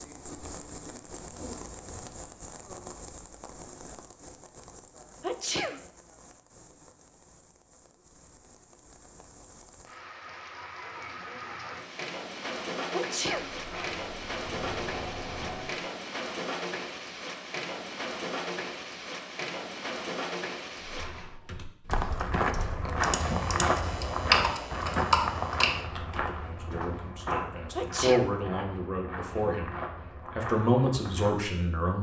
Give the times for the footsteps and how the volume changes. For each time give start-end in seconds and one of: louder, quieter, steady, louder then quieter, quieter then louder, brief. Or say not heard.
21.9-31.4 quieter.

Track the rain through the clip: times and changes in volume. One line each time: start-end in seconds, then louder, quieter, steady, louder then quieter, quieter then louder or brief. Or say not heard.
0.0-21.4 quieter then louder.